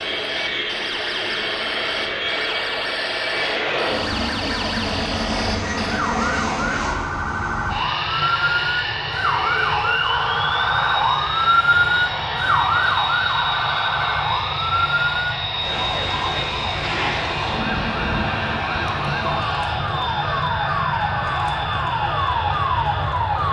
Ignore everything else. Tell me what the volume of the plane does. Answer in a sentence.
The loudness of the plane stays about the same.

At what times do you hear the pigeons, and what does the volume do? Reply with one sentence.
You can't hear the pigeons here.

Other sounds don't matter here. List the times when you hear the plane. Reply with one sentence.
The plane can be heard from 0.0 to 23.4 s.